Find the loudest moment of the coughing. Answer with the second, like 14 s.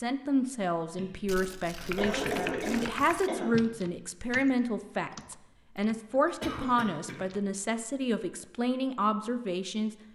3 s.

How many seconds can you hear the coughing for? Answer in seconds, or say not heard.
4 s.